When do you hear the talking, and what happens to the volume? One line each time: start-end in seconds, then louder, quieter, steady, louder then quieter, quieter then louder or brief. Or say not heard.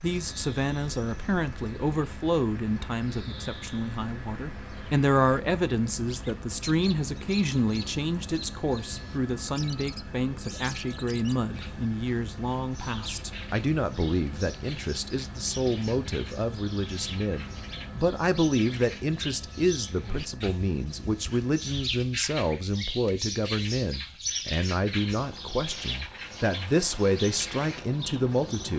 0.0-28.7 steady.